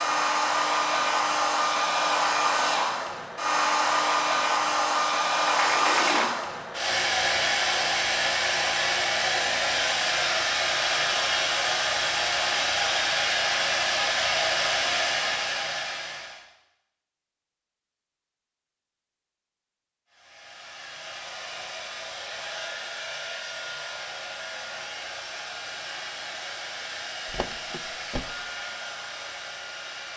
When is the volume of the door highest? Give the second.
6 s.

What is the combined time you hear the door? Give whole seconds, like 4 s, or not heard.
2 s.